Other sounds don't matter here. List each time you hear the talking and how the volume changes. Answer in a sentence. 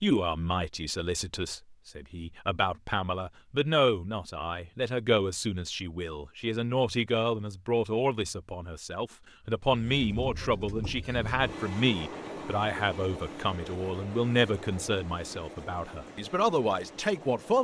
You can hear the talking from 0.0 to 17.5 s, at a steady volume.